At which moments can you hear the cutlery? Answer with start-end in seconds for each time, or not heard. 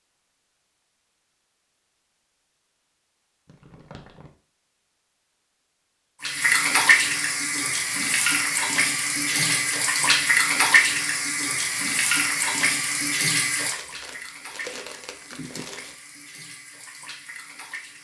not heard.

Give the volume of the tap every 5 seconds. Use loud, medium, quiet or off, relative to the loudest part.
off, loud, loud, quiet.